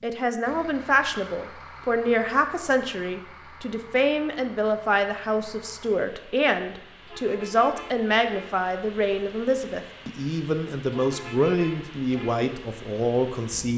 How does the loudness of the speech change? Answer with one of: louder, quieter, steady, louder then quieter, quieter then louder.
steady.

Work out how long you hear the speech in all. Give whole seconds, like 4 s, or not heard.
14 s.